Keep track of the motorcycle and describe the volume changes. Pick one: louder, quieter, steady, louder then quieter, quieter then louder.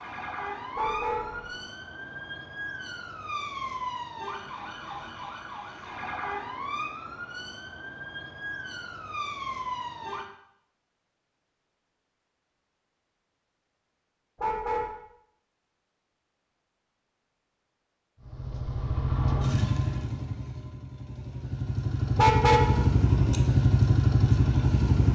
quieter then louder.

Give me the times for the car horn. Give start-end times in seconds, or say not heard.
0.8-1.4, 14.3-14.9, 22.1-22.9.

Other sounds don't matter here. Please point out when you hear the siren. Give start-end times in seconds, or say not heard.
0.0-10.3.